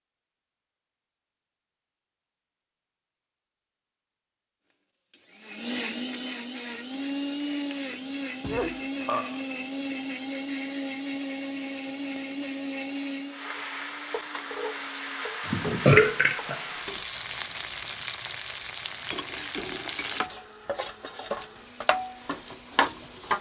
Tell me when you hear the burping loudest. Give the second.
16 s.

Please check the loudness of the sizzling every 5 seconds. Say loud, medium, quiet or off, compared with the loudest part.
off, quiet, medium, loud, loud.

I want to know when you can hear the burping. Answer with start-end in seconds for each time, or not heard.
8.4-9.4, 15.4-16.9.